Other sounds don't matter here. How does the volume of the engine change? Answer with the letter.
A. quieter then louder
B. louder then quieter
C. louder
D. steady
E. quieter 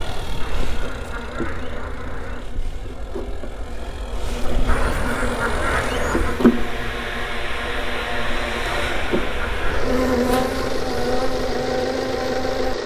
C.